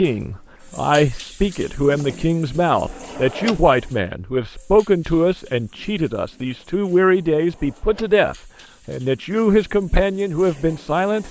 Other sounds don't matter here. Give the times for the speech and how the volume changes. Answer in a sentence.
The speech can be heard from 0.0 to 11.2 s, at a steady volume.